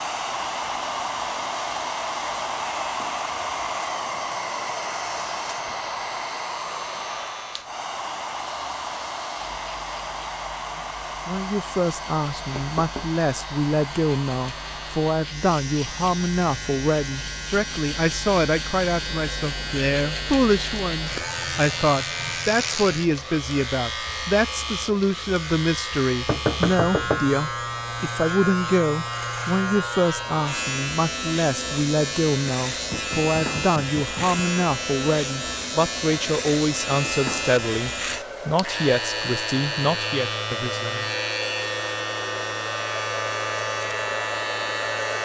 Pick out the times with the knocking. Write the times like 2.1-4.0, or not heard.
12.3-13.2, 26.2-27.2, 32.9-34.5.